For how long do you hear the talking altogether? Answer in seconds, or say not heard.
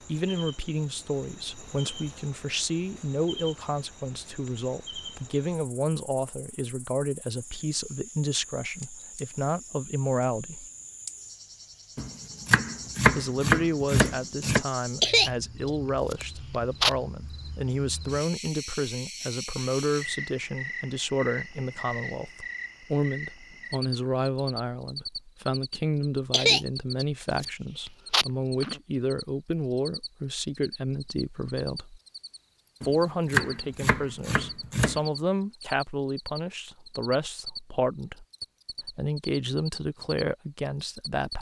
37 s.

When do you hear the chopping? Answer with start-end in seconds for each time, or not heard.
11.9-14.7, 32.8-35.0.